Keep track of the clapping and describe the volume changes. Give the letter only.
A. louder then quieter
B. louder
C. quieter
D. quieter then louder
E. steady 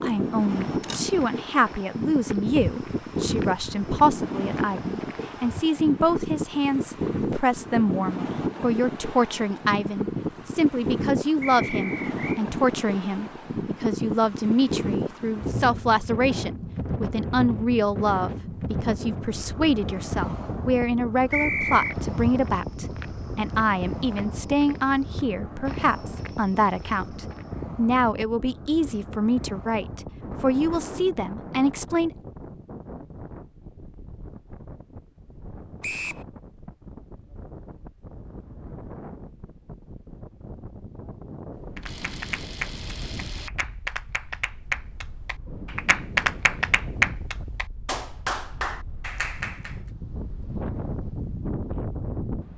A.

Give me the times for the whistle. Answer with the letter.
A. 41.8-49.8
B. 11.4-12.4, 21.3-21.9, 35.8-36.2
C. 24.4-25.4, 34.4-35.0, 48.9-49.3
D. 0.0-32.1
B.